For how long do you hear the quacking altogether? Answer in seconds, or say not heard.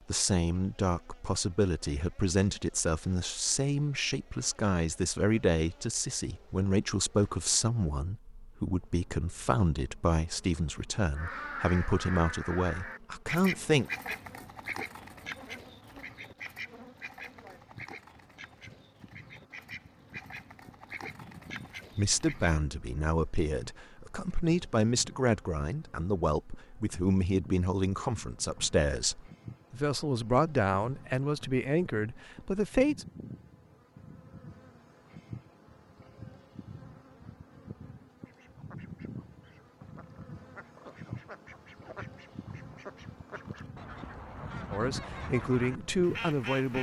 20 s.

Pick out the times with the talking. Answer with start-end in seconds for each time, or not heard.
0.1-13.9, 21.9-33.0, 44.7-46.7.